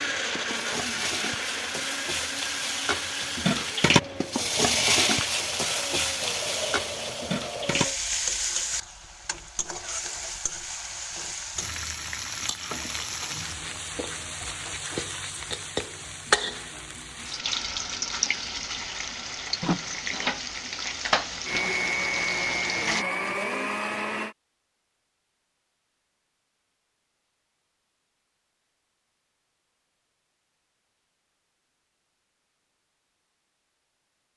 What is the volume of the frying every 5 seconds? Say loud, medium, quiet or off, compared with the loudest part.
loud, loud, medium, loud, loud, off, off.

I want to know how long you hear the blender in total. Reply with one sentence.
The blender can be heard for 11 seconds in total.